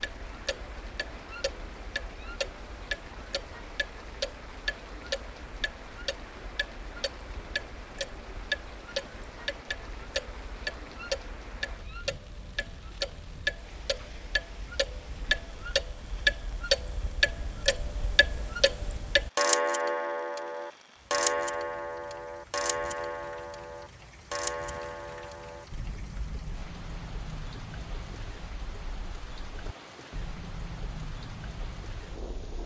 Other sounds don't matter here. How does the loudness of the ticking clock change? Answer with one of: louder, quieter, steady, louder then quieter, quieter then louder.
louder then quieter.